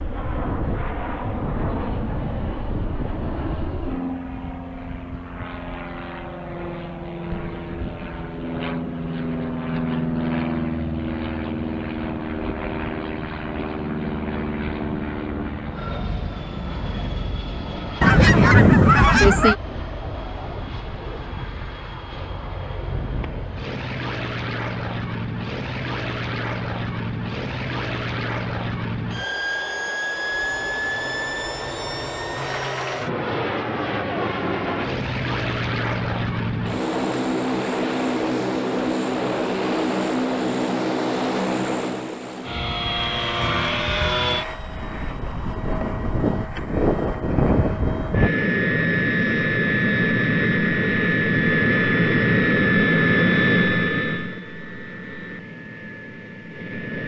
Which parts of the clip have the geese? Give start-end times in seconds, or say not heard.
18.0-19.6.